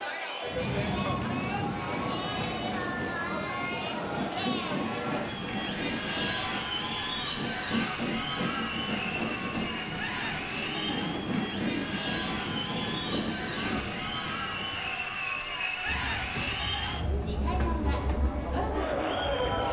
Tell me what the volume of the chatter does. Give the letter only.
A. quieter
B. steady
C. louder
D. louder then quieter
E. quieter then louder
B.